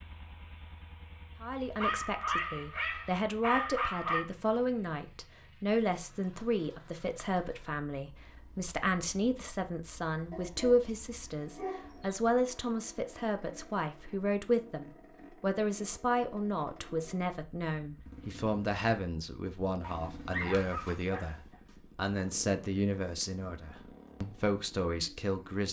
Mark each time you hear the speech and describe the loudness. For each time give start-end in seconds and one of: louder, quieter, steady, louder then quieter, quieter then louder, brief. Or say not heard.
1.4-25.6 steady.